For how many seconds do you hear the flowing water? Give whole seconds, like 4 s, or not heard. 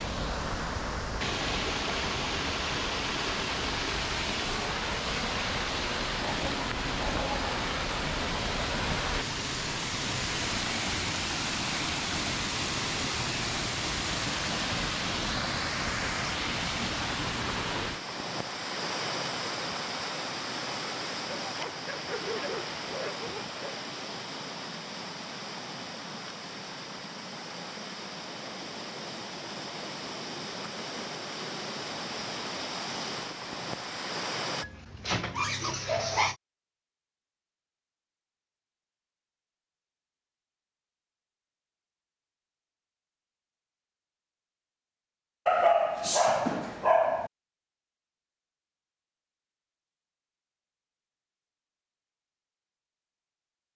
35 s.